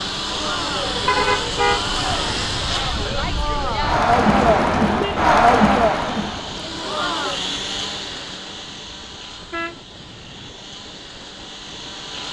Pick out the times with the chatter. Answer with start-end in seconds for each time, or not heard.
0.2-7.4.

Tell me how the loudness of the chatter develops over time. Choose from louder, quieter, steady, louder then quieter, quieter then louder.
louder then quieter.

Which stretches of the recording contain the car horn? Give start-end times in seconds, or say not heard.
1.1-1.8, 4.5-5.2, 9.5-10.5.